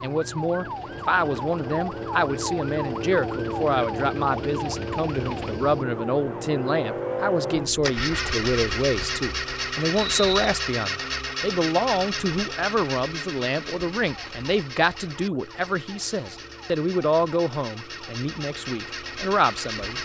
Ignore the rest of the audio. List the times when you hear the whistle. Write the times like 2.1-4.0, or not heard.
9.9-10.6.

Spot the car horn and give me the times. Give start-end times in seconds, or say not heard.
not heard.